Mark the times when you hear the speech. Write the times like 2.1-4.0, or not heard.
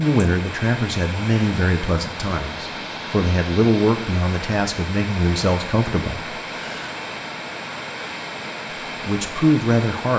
0.0-6.9, 9.0-10.1.